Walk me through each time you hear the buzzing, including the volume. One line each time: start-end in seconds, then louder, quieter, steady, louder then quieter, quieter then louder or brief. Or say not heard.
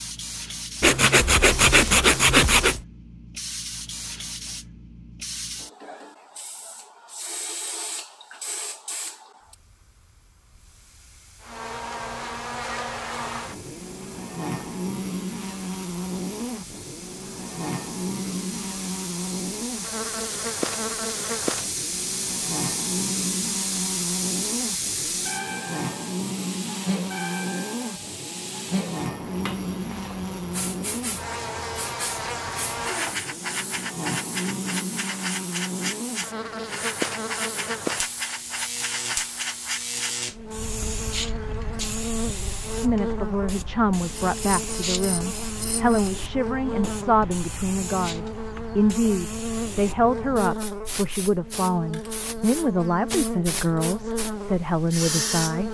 11.4-55.6 steady.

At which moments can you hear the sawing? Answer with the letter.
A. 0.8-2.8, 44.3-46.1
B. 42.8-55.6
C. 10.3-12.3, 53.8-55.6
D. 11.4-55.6
A.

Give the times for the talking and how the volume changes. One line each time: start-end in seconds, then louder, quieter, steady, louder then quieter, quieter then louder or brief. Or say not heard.
42.8-55.6 steady.